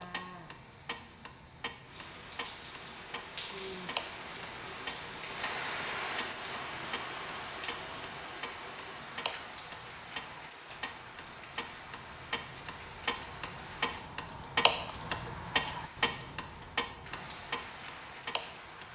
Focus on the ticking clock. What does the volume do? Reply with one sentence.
The loudness of the ticking clock goes up.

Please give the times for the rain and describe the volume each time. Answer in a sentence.
You can hear the rain from 0.0 to 18.8 s, getting louder then quieter.